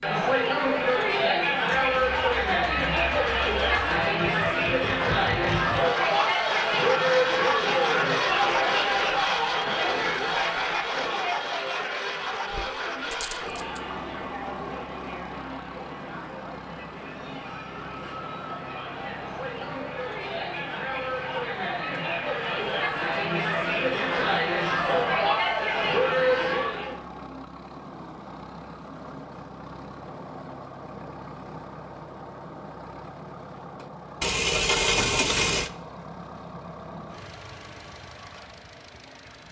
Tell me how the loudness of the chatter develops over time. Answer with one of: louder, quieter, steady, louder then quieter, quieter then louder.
quieter then louder.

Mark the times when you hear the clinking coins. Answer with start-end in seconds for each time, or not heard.
12.5-13.8, 34.2-35.7.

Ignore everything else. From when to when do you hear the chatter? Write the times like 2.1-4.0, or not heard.
0.0-26.9.